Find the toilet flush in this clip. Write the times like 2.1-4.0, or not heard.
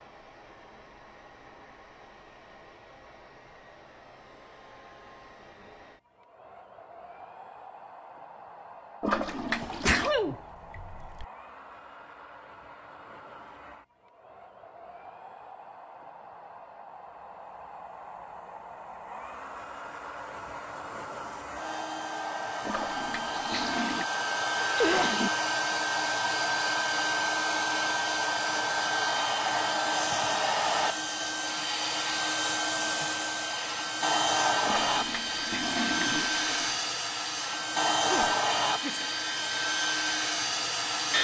9.0-10.1, 22.6-24.1, 34.6-36.8.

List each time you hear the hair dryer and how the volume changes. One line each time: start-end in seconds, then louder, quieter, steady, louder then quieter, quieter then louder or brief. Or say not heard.
0.0-41.1 louder.